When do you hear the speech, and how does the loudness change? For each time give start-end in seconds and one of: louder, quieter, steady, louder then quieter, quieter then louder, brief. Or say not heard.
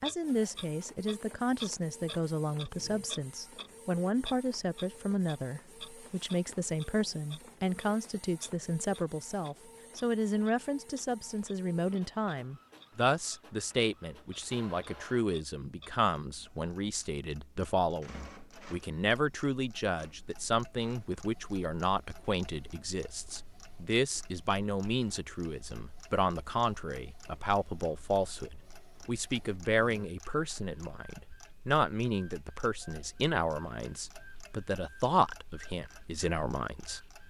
0.0-37.0 steady.